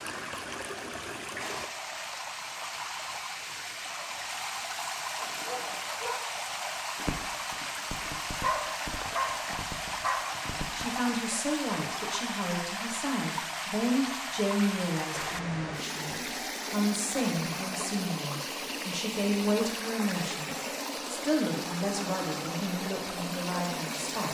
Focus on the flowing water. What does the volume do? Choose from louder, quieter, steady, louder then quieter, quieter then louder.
steady.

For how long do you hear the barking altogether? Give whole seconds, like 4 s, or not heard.
6 s.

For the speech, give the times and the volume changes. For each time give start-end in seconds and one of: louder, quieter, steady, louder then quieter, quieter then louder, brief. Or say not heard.
10.7-24.3 steady.